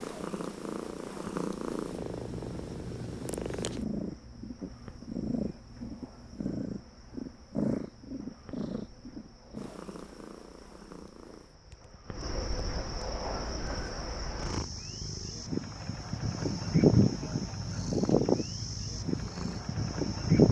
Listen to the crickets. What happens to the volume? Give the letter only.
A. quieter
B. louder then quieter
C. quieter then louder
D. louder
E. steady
D.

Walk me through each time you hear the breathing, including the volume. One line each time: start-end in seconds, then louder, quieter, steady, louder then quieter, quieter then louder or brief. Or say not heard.
not heard.